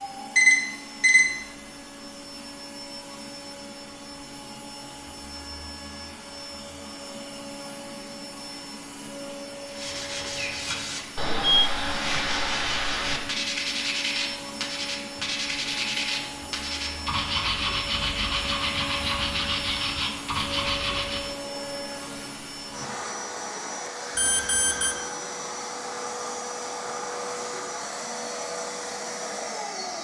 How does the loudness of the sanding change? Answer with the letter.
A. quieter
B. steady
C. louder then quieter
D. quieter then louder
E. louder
B.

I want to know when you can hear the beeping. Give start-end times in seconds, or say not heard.
0.3-1.3, 11.4-12.2, 24.1-24.9.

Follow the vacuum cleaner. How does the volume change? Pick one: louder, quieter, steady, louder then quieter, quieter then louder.
louder.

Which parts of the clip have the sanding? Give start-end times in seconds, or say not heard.
9.7-21.3.